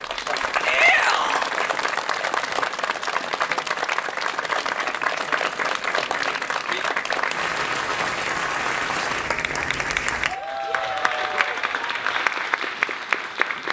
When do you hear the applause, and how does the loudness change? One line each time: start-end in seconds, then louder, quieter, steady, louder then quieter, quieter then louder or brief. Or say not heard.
0.0-13.6 steady.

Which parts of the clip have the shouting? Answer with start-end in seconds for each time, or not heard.
0.6-1.5.